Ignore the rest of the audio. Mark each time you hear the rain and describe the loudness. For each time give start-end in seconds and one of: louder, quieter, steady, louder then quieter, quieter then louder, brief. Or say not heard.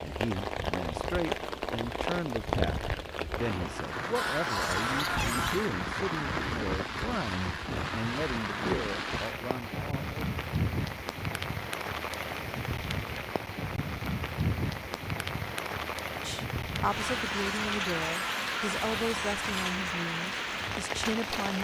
0.0-21.6 steady.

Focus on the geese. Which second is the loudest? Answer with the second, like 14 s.
5 s.